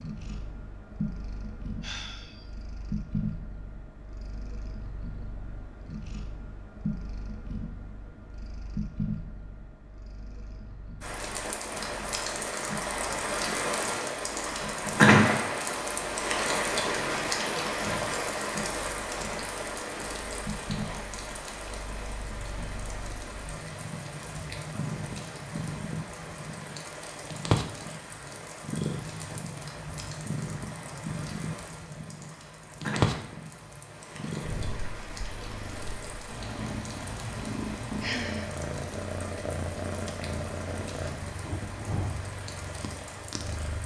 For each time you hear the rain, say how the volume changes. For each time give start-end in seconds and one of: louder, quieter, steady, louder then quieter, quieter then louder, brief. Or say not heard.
11.0-43.8 quieter.